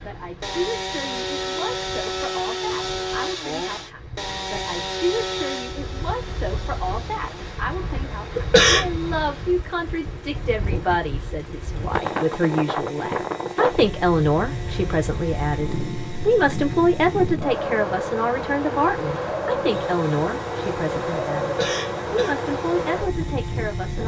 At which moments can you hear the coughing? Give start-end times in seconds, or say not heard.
8.3-8.9, 21.4-22.4.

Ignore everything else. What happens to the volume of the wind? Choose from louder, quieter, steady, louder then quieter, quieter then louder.
louder.